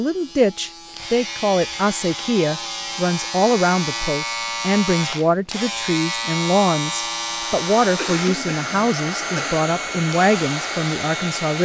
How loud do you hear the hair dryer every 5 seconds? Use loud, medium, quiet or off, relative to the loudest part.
off, loud, loud.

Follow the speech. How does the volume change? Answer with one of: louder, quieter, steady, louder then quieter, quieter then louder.
steady.